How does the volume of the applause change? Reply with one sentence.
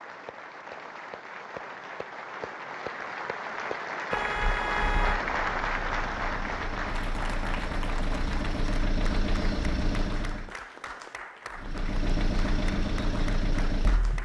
The loudness of the applause goes up, then down.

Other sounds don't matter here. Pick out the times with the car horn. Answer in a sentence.
You can hear the car horn from 4.1 to 5.2 s.